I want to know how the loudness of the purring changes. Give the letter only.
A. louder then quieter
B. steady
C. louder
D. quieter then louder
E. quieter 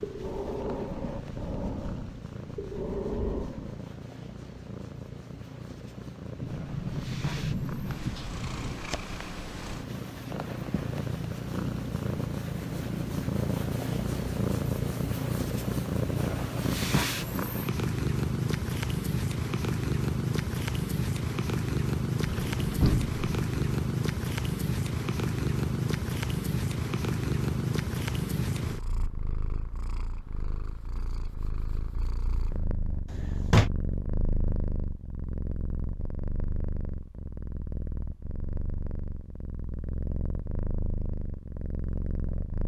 A.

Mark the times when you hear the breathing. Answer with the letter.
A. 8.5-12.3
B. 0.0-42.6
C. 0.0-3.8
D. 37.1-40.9
C.